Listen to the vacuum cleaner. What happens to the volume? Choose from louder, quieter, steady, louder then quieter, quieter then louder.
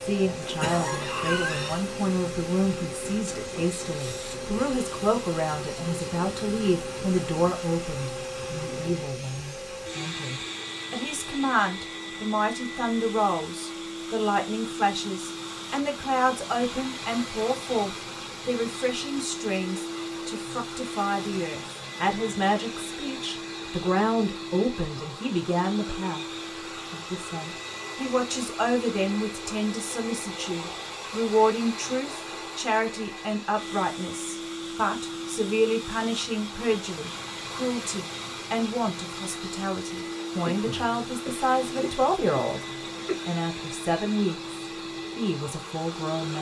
steady.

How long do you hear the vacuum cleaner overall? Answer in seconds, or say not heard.
46 s.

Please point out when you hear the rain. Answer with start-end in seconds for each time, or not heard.
not heard.